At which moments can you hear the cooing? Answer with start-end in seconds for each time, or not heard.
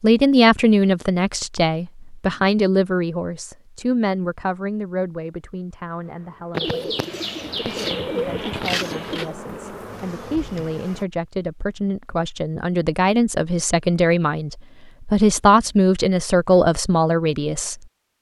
6.5-9.3.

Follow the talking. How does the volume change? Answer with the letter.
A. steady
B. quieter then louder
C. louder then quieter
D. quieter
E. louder
B.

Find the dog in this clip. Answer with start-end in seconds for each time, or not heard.
not heard.